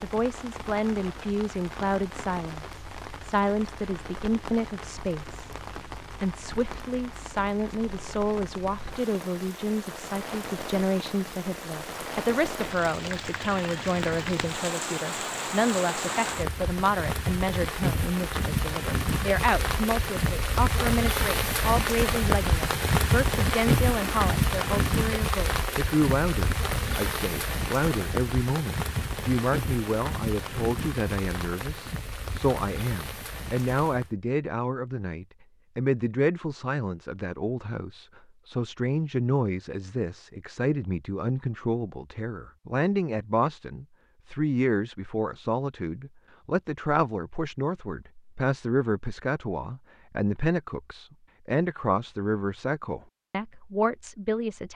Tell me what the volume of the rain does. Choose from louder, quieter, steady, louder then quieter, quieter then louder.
louder then quieter.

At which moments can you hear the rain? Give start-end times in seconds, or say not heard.
0.0-34.1.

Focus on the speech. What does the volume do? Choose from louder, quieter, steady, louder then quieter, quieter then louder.
steady.